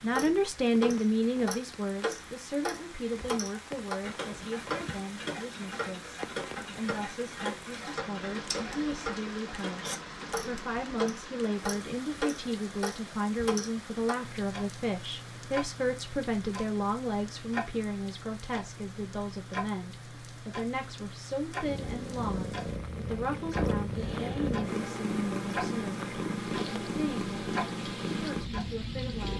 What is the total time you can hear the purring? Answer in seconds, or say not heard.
8 s.